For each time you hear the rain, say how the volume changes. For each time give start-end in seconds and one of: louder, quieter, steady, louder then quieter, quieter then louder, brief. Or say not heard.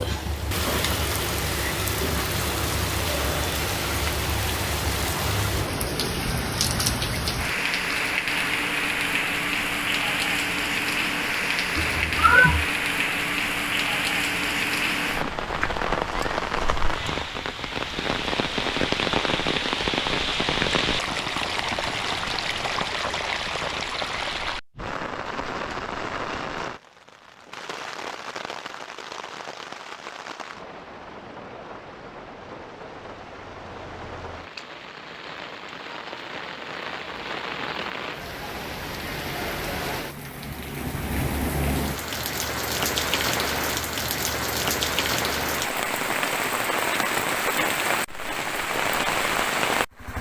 0.0-50.1 quieter then louder.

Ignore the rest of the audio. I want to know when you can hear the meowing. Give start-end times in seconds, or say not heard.
11.8-12.7.